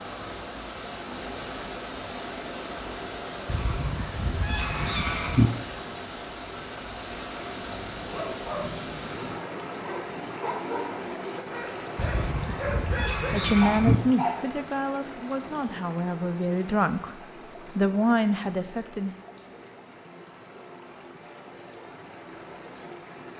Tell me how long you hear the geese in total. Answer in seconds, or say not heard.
4 s.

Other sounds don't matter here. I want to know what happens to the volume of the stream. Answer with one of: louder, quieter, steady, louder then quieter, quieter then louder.
quieter.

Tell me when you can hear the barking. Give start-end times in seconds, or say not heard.
7.8-14.4.